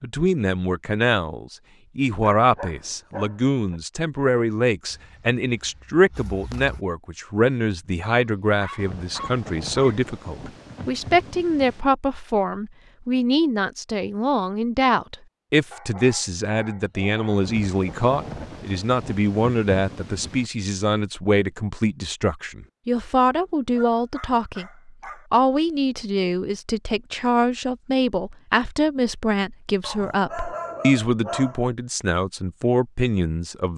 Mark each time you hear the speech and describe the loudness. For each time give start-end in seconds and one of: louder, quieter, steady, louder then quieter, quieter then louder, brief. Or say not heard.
0.0-33.7 steady.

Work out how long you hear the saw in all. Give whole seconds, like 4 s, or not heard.
not heard.